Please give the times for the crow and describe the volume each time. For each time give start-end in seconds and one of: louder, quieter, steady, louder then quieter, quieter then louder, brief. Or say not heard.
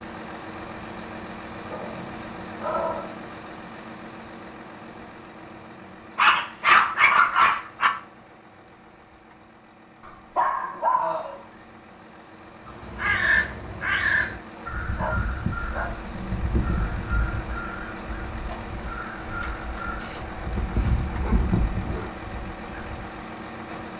12.7-23.0 quieter then louder.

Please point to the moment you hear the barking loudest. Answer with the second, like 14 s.
7 s.